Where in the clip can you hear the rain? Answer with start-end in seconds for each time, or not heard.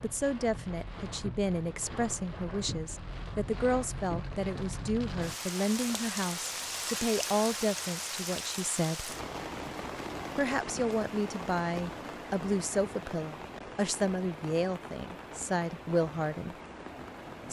0.0-17.4.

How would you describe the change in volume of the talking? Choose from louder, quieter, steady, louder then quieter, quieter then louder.
steady.